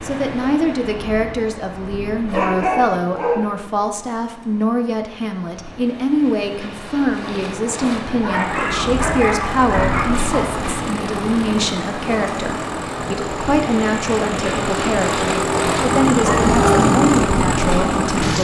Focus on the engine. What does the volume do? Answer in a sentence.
The volume of the engine goes up.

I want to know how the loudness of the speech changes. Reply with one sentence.
The loudness of the speech stays about the same.